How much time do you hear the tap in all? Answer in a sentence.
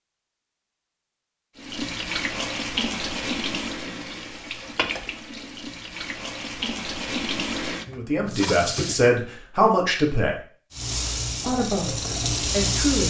The tap can be heard for 10 seconds in total.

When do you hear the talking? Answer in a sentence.
The talking can be heard from 7.9 to 10.3 s and from 11.4 to 13.0 s.